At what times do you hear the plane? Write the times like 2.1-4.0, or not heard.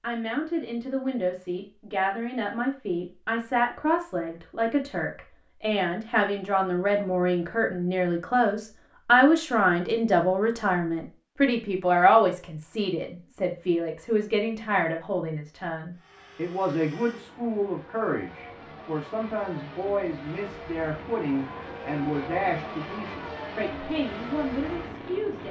15.9-25.4.